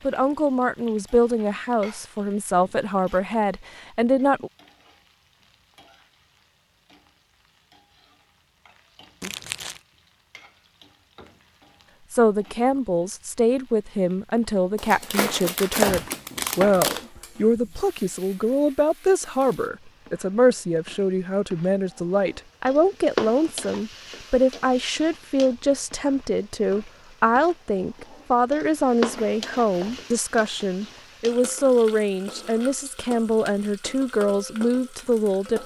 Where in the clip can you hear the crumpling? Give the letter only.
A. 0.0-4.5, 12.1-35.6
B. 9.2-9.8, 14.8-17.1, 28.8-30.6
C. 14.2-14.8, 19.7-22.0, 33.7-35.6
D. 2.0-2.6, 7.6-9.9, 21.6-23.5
B.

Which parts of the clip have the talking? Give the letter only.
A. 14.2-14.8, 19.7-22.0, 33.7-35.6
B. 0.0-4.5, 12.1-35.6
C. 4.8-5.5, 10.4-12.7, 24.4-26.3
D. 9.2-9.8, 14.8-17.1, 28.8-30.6
B.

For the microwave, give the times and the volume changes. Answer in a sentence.
The microwave can't be heard in this clip.